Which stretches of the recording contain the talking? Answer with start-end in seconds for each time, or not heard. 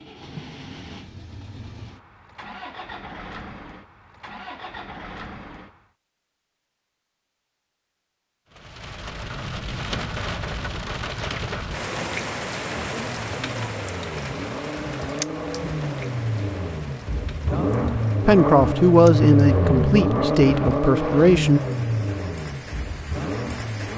18.2-21.6.